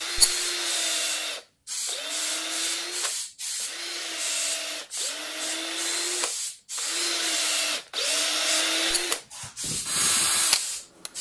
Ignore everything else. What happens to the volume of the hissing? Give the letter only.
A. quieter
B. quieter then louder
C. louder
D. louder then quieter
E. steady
E.